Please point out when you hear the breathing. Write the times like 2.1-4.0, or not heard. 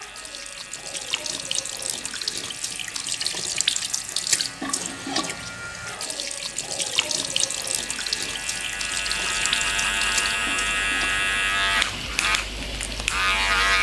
not heard.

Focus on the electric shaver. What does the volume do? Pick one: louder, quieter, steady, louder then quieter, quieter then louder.
louder.